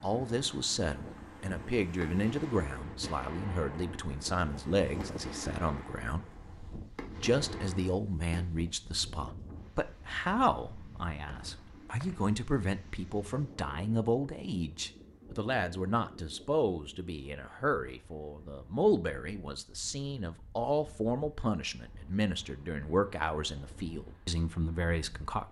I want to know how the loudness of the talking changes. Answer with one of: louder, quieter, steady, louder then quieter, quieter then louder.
steady.